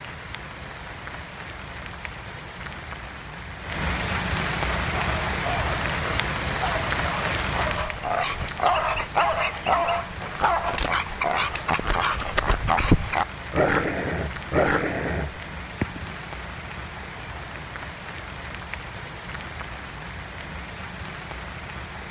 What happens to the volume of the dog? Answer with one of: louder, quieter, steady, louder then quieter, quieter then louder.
louder.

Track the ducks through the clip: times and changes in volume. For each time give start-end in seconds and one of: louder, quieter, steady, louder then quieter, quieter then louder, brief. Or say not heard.
not heard.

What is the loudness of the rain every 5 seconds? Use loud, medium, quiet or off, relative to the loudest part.
loud, loud, medium, medium, medium.